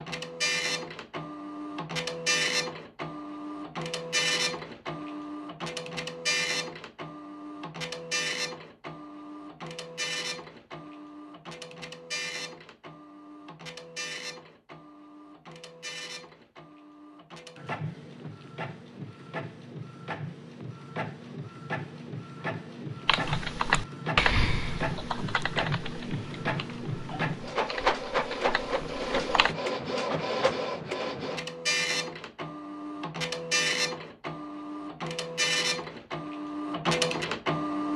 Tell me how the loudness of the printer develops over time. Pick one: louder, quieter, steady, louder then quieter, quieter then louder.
quieter then louder.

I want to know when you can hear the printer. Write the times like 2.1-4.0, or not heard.
0.0-37.9.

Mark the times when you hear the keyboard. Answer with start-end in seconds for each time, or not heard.
23.1-29.6.